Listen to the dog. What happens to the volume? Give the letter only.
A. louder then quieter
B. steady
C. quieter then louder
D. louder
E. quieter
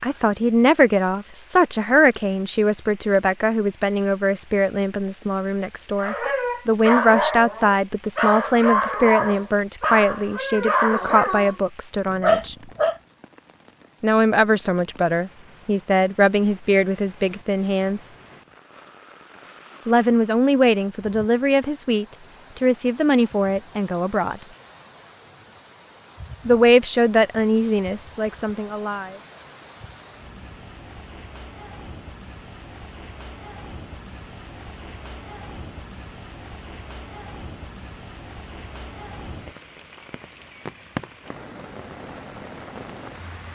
B.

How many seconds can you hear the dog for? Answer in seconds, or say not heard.
7 s.